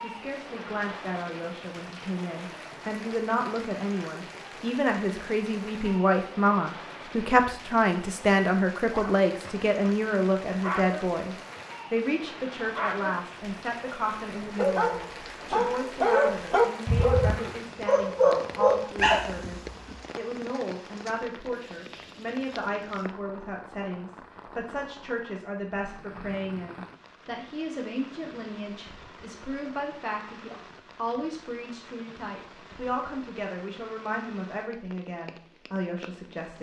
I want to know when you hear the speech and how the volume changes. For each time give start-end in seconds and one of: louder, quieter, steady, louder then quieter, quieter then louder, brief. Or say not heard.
0.0-36.5 quieter.